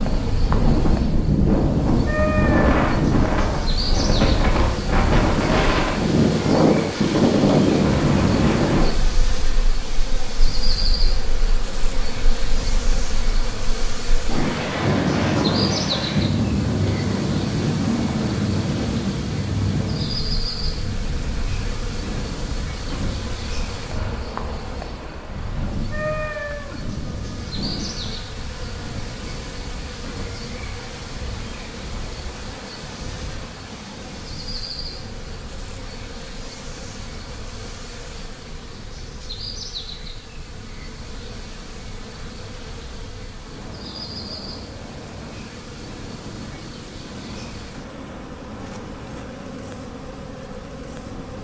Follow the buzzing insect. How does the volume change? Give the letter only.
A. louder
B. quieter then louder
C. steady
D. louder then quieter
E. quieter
E.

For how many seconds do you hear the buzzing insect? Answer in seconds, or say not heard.
51 s.